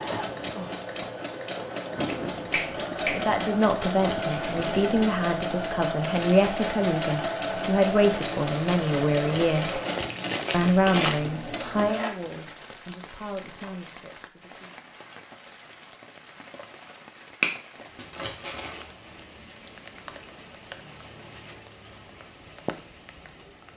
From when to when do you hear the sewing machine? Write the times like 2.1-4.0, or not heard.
0.0-12.2.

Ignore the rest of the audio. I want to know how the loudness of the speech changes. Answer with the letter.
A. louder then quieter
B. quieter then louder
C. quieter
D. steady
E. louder
C.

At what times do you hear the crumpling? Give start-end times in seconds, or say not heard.
3.9-4.8, 9.1-11.2, 17.9-18.9.